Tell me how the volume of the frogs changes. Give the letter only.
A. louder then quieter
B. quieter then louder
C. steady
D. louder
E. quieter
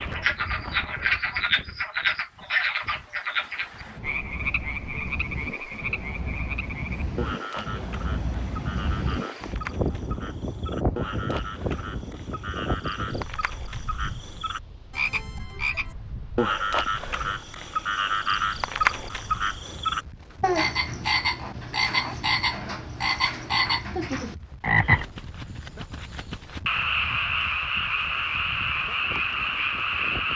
B.